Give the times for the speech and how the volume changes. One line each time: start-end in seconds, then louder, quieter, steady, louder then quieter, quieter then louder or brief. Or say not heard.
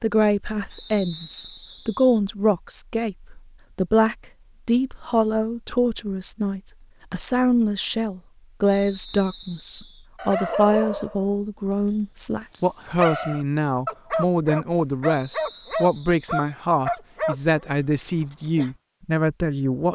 0.0-19.9 steady.